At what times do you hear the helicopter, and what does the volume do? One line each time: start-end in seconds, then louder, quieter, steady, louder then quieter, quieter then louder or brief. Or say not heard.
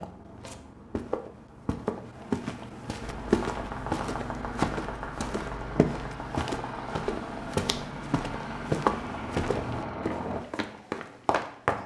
3.0-10.4 steady.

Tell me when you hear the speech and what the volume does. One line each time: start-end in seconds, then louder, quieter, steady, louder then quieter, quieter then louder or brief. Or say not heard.
not heard.